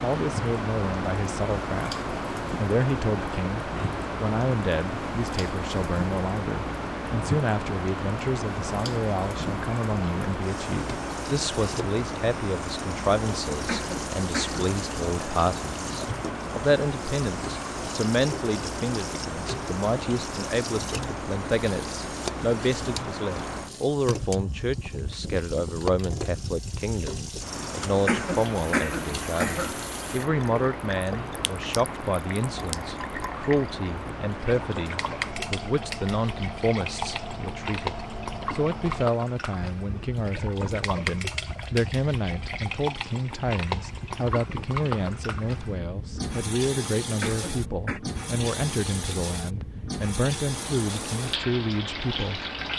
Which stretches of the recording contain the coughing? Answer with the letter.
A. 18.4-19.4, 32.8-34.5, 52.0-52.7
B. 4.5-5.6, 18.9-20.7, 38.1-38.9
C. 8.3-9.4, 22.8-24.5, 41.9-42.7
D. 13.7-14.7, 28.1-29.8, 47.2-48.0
D.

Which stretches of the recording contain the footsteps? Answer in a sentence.
You can't hear the footsteps here.